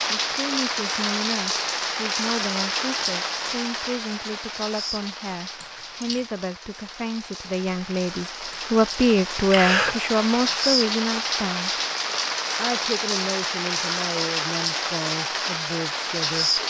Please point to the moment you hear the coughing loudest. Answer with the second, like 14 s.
10 s.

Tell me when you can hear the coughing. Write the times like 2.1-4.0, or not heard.
5.6-6.2, 8.5-10.0.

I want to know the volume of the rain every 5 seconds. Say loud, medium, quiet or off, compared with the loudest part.
loud, medium, loud, loud.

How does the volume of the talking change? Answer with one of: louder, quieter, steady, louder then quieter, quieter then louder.
louder then quieter.